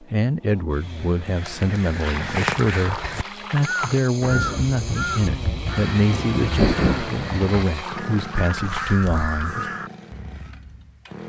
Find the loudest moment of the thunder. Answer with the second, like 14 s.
7 s.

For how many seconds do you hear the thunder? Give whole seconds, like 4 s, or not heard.
3 s.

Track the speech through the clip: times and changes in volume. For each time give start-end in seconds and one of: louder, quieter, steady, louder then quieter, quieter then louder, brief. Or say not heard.
0.0-9.7 steady.